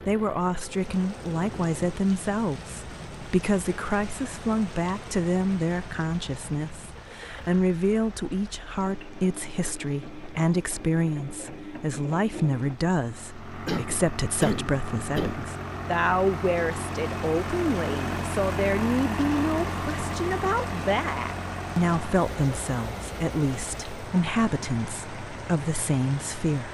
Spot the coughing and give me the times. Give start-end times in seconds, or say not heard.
13.7-15.5.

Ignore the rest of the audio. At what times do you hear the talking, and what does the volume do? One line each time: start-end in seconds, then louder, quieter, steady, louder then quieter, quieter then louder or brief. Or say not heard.
0.0-26.6 steady.